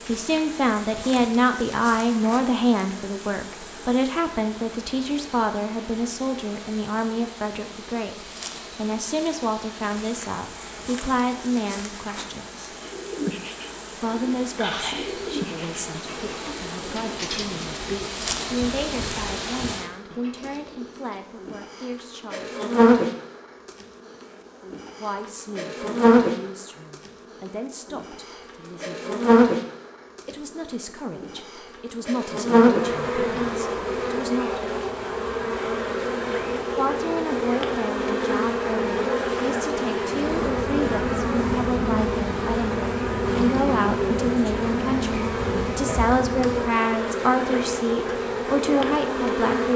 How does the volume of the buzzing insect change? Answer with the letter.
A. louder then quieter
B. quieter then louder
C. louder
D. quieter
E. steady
C.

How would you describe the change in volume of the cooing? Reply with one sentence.
The volume of the cooing goes down.